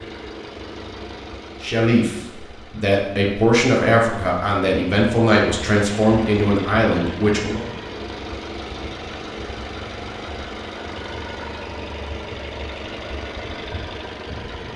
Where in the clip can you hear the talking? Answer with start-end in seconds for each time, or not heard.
1.6-7.6.